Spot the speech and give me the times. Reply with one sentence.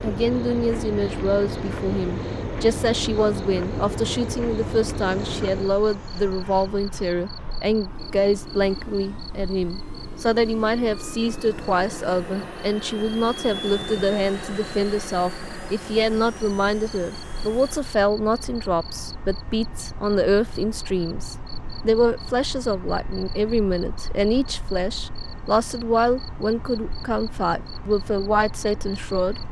The speech can be heard from 0.0 to 29.4 s.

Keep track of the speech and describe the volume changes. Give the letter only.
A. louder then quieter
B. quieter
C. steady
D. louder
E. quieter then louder
C.